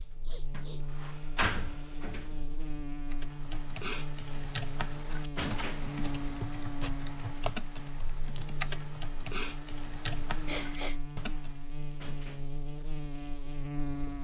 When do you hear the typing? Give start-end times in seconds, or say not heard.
3.1-11.6.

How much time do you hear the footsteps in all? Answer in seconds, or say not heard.
not heard.